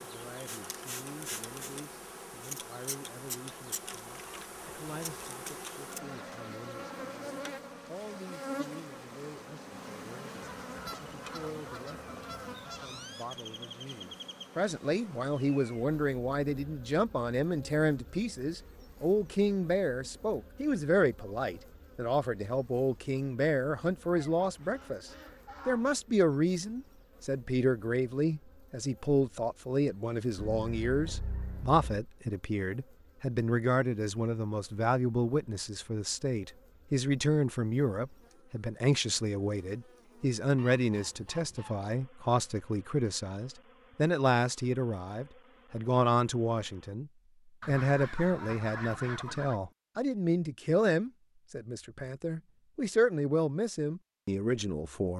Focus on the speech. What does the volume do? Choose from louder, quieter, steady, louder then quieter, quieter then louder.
louder.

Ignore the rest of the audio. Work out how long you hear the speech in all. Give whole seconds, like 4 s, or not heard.
55 s.